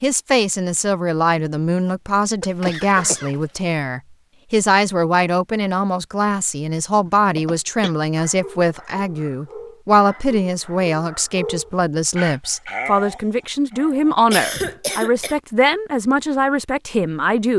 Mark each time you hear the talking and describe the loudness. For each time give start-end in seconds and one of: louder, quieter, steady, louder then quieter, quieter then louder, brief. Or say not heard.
0.0-17.5 steady.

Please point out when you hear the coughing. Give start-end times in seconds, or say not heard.
2.4-3.6, 7.0-7.9, 14.3-15.3.